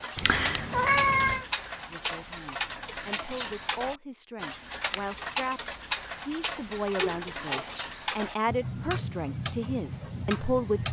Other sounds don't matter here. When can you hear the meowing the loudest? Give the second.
1 s.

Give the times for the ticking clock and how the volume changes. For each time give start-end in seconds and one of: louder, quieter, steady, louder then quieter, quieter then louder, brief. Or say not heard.
0.0-10.8 steady.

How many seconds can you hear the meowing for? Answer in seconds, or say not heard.
2 s.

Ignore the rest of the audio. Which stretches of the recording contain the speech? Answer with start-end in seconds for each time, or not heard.
1.9-10.8.